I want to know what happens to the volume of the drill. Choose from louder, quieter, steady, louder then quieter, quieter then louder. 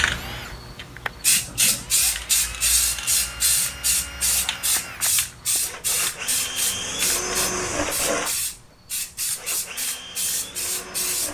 louder then quieter.